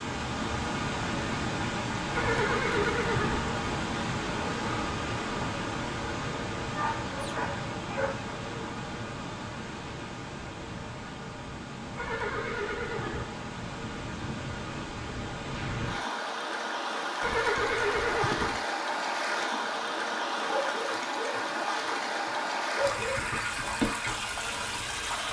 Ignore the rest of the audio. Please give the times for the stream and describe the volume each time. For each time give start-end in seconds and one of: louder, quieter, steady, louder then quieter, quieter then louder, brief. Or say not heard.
0.0-25.2 quieter then louder.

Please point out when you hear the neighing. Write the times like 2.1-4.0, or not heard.
2.1-3.5, 11.9-13.3, 17.2-18.6.